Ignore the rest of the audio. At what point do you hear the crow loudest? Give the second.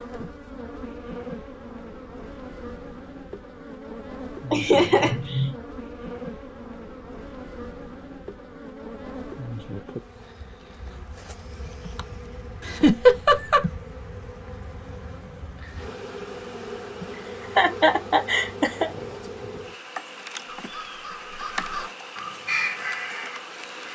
23 s.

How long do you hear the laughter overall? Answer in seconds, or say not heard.
4 s.